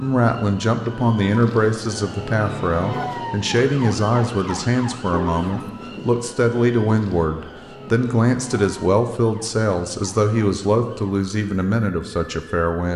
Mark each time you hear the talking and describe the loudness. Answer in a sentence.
You can hear the talking from 0.0 to 12.9 s, at a steady volume.